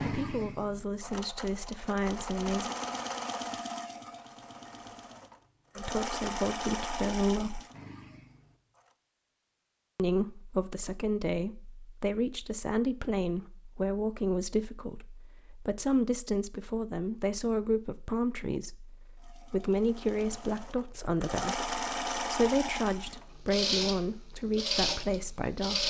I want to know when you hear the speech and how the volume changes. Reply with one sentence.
The speech can be heard briefly from 0.0 to 2.8 s; briefly from 5.8 to 7.6 s; and from 9.9 to 25.8 s, at a steady volume.